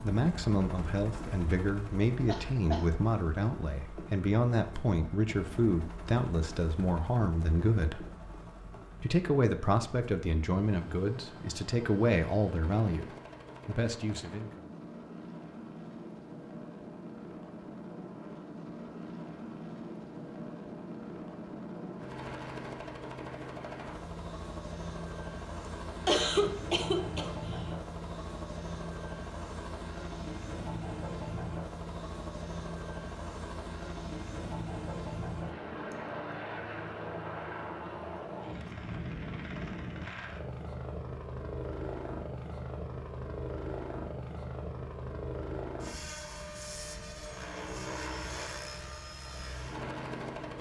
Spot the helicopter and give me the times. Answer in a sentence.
The helicopter can be heard from 0.0 to 50.5 s.